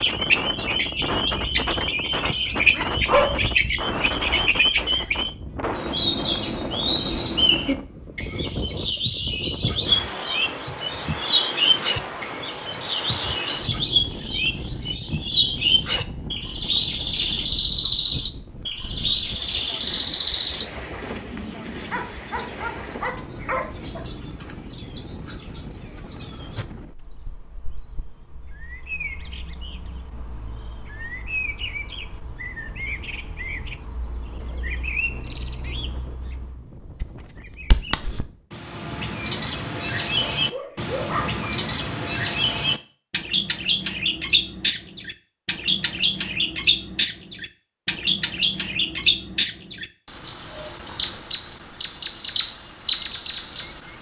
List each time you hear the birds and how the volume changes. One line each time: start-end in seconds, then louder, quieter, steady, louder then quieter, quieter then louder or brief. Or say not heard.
0.0-53.9 quieter then louder.